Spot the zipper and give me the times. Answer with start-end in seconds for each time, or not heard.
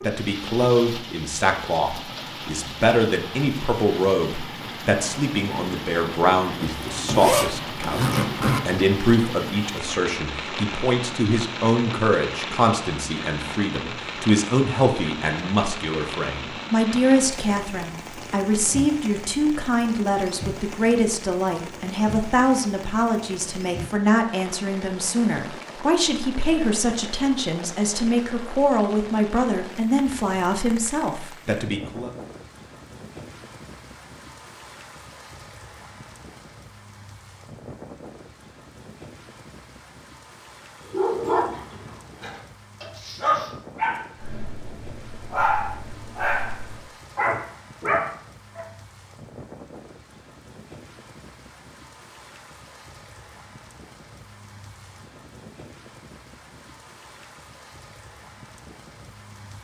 6.6-8.6.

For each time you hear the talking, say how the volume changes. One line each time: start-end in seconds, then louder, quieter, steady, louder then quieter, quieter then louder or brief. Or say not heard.
0.0-32.1 steady.